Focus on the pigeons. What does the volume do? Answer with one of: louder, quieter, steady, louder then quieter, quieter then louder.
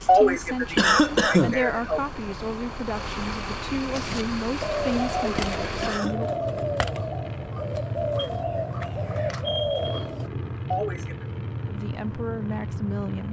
steady.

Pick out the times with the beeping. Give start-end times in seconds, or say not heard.
8.2-10.1.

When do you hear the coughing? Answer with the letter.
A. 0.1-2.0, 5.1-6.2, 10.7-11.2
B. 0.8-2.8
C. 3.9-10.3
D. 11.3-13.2
A.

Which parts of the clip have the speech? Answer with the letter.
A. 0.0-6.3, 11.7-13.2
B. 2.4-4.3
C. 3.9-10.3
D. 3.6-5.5
A.